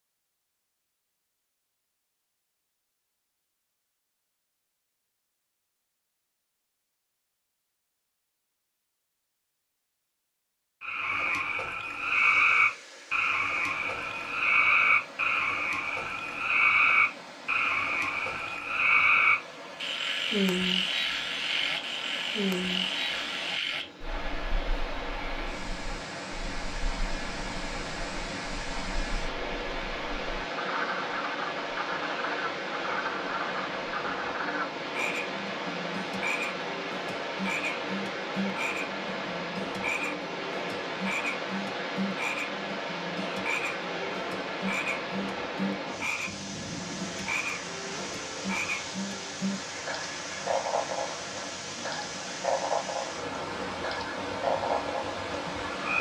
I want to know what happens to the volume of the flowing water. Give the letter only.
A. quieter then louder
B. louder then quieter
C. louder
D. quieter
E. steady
C.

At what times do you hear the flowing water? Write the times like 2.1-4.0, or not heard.
11.9-55.9.